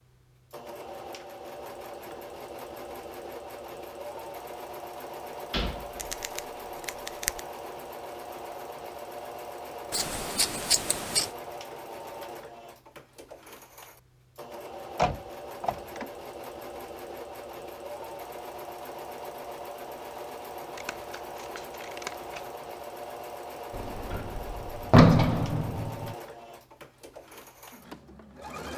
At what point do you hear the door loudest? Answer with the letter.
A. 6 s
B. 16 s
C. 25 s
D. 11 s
C.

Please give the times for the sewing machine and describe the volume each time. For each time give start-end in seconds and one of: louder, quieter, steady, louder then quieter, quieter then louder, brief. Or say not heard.
0.0-28.7 steady.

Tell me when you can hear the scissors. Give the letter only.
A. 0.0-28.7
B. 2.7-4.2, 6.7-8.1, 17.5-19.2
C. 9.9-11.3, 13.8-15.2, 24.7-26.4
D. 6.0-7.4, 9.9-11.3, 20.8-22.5
D.